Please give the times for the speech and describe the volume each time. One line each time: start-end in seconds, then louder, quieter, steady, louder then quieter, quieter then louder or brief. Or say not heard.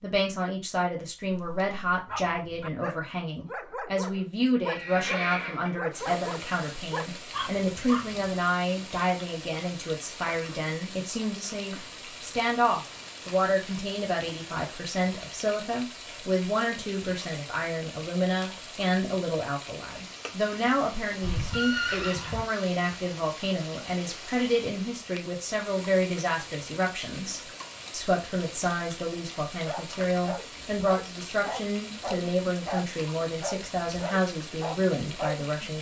0.0-35.7 steady.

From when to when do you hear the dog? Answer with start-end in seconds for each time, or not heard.
1.2-8.3, 29.6-35.7.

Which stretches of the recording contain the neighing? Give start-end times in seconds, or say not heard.
4.7-5.8, 21.2-22.4.